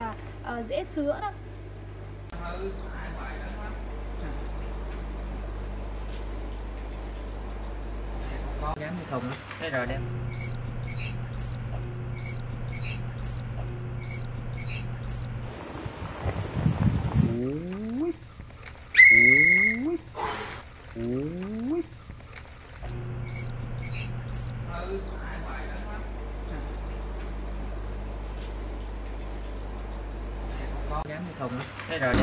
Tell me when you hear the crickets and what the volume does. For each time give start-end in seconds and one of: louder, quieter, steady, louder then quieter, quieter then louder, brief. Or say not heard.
0.0-32.1 steady.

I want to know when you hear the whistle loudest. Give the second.
19 s.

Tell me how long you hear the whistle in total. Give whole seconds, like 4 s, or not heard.
2 s.